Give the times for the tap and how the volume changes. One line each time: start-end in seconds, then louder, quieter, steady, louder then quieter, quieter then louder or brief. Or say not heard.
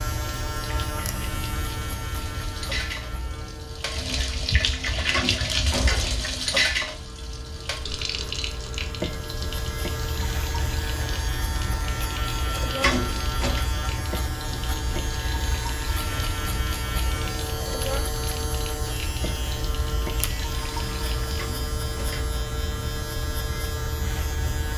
0.1-21.4 louder then quieter.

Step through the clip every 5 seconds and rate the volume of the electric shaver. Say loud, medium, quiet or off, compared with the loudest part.
loud, medium, loud, loud, loud.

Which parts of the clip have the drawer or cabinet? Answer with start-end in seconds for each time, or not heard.
5.1-6.3, 12.8-13.7, 21.4-22.4.